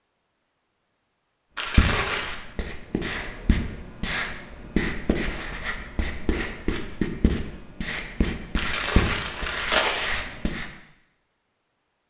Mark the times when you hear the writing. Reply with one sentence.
The writing can be heard from 1.6 to 10.7 s.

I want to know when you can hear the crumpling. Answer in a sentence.
You can hear the crumpling from 1.6 to 2.3 s and from 8.6 to 10.0 s.